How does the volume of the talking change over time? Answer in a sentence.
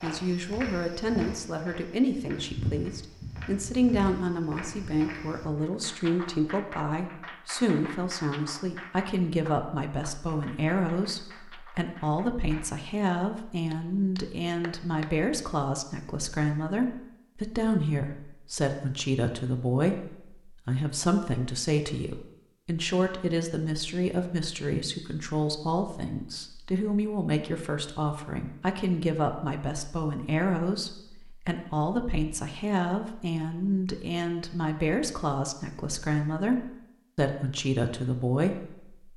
The volume of the talking stays about the same.